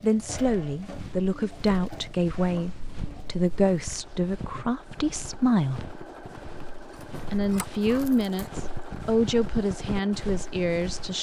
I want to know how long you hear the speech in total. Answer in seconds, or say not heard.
10 s.